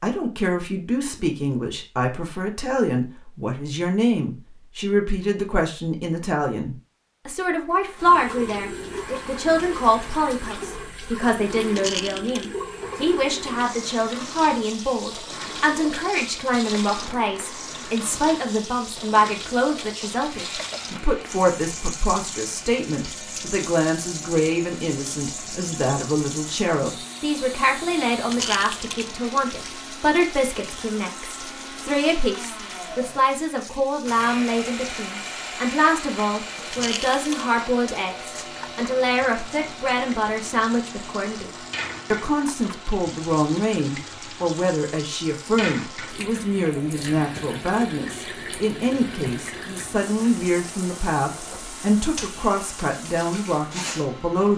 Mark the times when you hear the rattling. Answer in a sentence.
You can hear the rattling from 11.7 to 12.5 s, from 28.3 to 29.1 s and from 36.7 to 37.5 s.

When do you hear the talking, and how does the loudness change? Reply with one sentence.
You can hear the talking from 0.0 to 41.5 s, at a steady volume; and from 42.1 to 54.5 s, at a steady volume.